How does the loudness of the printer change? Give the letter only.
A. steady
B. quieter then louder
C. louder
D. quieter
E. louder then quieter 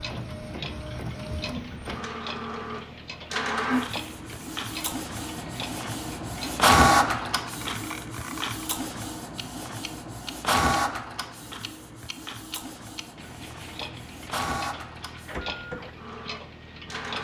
E.